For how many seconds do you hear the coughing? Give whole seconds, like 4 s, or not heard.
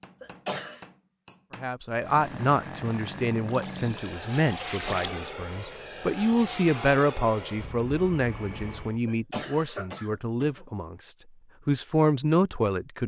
3 s.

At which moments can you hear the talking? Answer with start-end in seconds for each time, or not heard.
1.6-13.0.